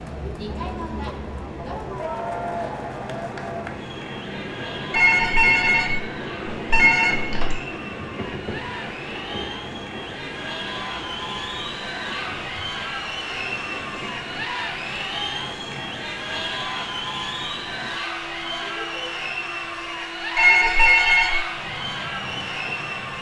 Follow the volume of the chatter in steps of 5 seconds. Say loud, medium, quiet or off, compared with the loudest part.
loud, medium, loud, loud, loud.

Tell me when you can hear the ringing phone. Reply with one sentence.
You can hear the ringing phone from 4.9 to 7.6 s and from 20.4 to 21.4 s.